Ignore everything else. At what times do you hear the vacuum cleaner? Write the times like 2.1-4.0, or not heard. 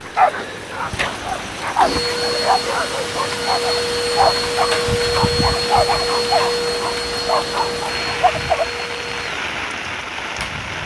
1.8-10.7.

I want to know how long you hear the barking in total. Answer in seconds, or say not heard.
9 s.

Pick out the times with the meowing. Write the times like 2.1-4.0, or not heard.
not heard.